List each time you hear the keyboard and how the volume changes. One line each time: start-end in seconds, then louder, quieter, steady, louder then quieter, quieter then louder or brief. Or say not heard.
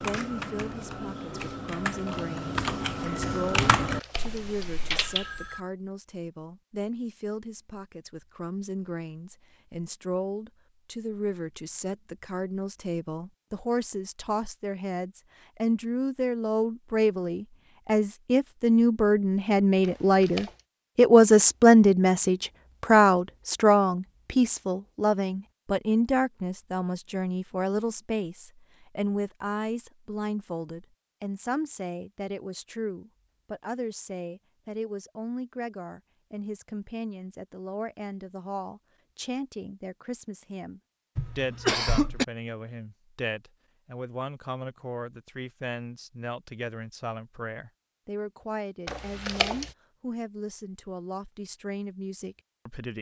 0.0-5.5 louder then quieter.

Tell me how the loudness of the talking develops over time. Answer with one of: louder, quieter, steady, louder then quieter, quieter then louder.
louder then quieter.